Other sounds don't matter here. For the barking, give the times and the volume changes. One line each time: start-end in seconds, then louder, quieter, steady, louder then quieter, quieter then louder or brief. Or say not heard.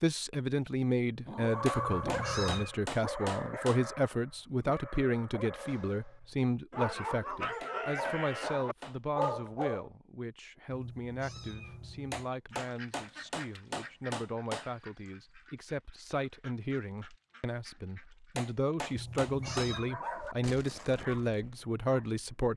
1.2-9.9 quieter then louder
19.3-22.2 brief.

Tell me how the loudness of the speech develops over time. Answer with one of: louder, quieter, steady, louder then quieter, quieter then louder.
quieter then louder.